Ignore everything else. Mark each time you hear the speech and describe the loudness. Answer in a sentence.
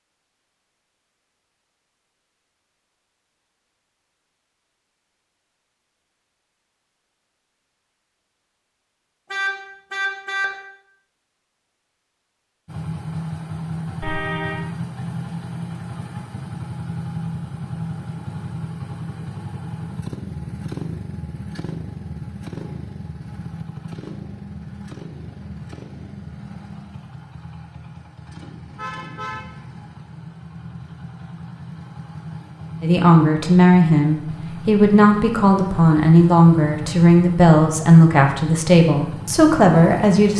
The speech can be heard from 32.8 to 40.3 s, at a steady volume.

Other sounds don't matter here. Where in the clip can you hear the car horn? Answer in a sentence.
The car horn can be heard from 9.3 to 10.4 s, from 14.0 to 14.7 s and from 28.8 to 29.5 s.